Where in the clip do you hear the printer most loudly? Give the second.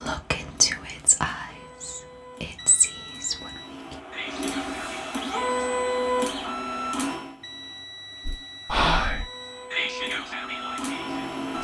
6 s.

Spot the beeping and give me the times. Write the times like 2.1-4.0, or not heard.
2.5-3.8, 7.4-9.7.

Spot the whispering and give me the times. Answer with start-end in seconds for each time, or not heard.
0.0-5.6, 8.2-11.5.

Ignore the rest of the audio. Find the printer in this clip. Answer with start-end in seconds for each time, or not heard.
0.0-11.5.